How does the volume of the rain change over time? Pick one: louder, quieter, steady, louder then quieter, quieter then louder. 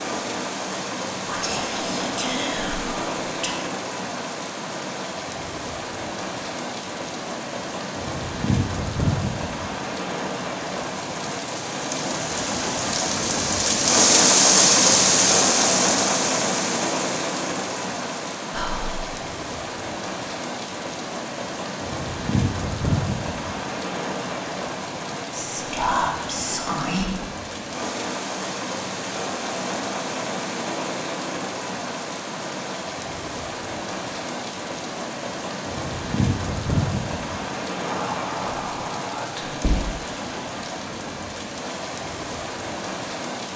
louder then quieter.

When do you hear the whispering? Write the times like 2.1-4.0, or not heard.
1.2-3.5, 18.5-19.0, 25.3-27.1, 37.8-39.9.